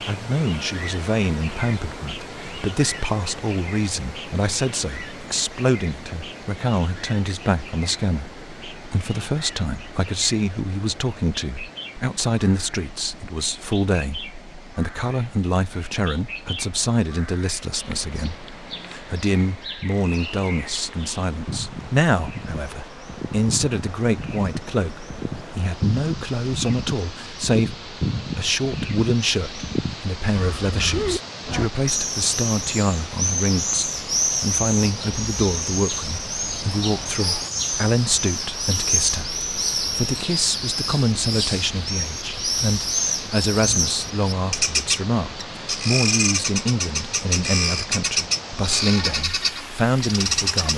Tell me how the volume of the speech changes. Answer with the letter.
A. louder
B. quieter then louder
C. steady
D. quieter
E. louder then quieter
C.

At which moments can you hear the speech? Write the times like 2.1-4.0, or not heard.
0.1-50.7.